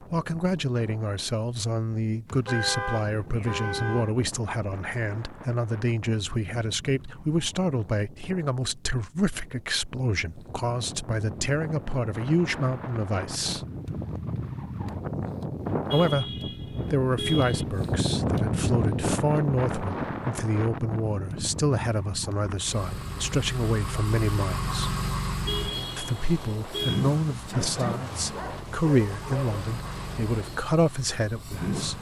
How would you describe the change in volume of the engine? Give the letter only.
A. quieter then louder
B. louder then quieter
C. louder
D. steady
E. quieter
E.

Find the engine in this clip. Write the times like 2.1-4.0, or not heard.
22.6-31.9.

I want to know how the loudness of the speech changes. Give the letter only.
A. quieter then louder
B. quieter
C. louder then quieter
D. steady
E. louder
D.